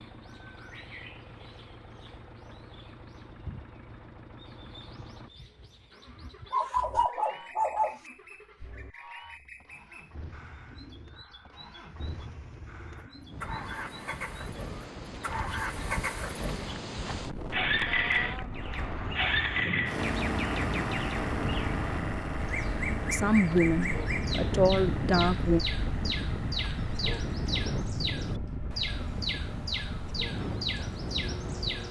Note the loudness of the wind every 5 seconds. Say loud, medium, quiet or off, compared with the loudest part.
off, off, medium, loud, loud, loud, loud.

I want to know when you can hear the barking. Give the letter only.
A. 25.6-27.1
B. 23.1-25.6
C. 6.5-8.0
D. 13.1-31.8
C.